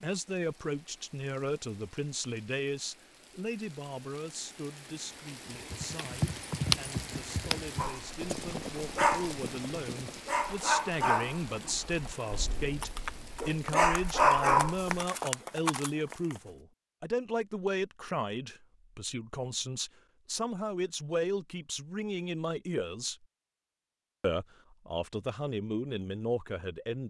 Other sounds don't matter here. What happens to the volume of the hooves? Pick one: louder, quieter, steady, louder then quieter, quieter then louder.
quieter then louder.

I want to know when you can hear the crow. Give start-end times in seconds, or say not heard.
not heard.